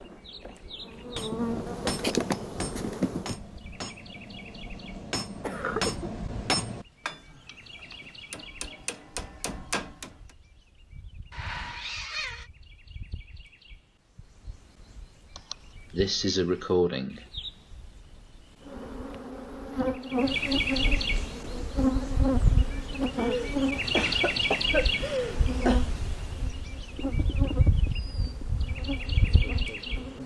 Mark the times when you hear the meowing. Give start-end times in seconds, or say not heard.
11.3-12.5.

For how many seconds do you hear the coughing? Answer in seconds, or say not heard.
5 s.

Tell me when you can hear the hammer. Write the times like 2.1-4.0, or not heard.
1.1-10.1.